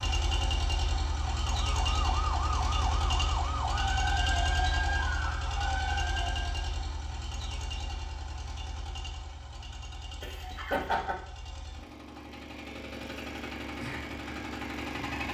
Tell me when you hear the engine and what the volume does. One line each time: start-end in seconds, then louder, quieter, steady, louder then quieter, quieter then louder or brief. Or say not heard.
0.0-15.3 quieter then louder.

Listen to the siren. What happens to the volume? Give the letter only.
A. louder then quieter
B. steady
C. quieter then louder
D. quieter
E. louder
B.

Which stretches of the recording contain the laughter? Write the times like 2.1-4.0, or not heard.
10.2-11.2.